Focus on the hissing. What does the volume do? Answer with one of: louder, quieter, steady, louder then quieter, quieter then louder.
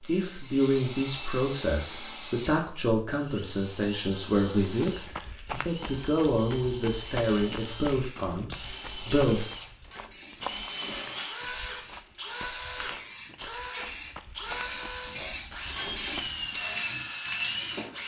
louder.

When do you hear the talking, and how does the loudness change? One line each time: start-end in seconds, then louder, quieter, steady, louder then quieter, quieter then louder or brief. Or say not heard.
0.0-9.4 steady.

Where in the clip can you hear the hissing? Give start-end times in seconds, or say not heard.
7.0-17.9.